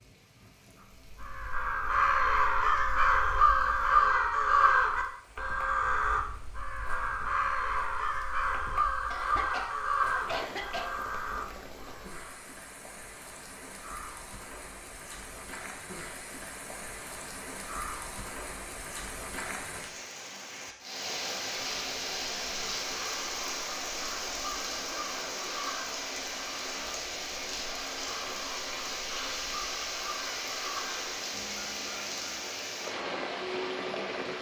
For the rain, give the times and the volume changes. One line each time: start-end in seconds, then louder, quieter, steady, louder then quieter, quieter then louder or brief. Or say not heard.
0.0-34.3 louder.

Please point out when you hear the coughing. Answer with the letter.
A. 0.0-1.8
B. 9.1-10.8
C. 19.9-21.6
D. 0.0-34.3
B.